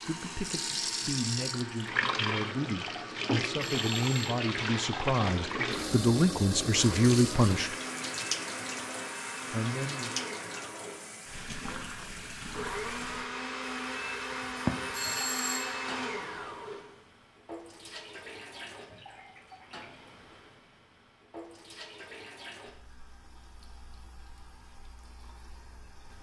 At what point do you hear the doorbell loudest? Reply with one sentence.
The volume of the doorbell peaks at 15 seconds.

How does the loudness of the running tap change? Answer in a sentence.
The loudness of the running tap goes down.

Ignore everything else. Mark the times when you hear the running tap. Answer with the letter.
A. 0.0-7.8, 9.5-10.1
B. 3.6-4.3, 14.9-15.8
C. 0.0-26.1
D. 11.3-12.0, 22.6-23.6
C.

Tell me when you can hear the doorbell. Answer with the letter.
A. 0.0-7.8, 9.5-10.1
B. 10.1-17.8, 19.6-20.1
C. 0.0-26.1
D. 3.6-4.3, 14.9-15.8
D.